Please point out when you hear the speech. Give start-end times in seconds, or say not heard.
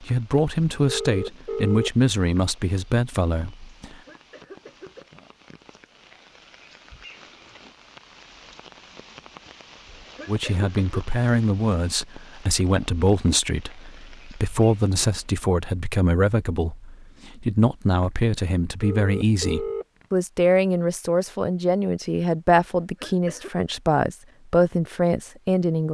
0.0-4.0, 10.2-25.8.